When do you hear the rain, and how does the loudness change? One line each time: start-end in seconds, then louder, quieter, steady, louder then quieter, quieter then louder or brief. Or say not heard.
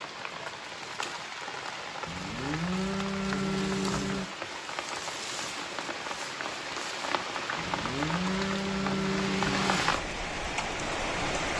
0.0-11.5 louder.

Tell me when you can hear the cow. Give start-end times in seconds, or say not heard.
2.0-4.3, 7.5-9.9.